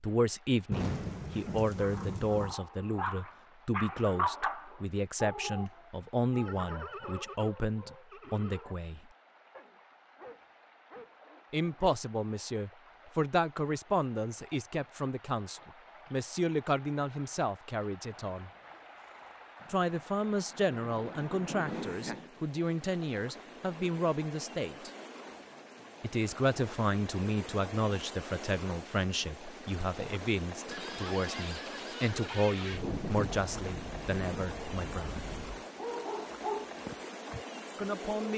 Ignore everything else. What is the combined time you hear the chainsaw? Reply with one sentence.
You can't hear the chainsaw here.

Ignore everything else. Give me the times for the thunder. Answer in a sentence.
You can hear the thunder from 0.7 to 2.5 s, from 19.6 to 22.3 s and from 32.6 to 35.6 s.